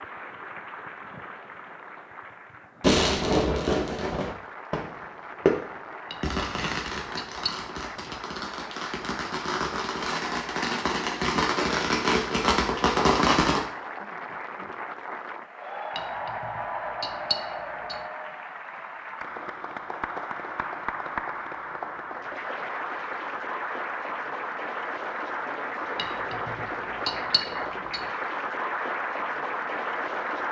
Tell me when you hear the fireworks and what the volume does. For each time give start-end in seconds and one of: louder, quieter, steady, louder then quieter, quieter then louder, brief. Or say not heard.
2.8-13.6 quieter then louder.